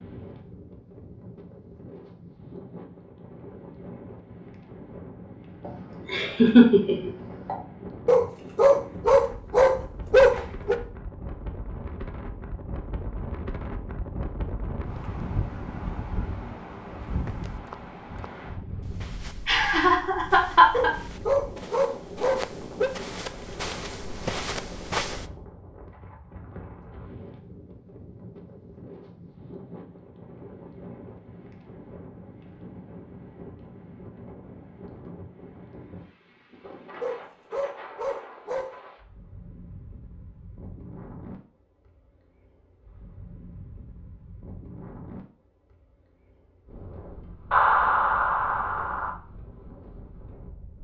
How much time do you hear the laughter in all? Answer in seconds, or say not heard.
5 s.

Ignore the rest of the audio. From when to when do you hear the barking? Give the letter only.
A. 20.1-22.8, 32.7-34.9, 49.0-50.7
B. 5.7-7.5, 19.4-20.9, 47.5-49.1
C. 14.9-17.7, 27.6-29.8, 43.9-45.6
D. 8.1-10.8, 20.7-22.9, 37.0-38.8
D.